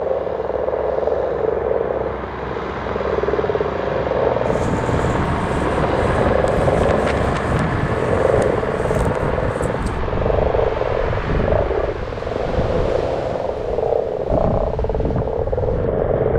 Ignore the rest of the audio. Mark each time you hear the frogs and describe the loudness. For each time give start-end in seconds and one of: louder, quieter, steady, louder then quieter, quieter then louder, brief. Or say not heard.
0.0-16.3 steady.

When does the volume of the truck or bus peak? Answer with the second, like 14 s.
6 s.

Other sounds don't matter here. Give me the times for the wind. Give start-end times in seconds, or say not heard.
4.5-16.3.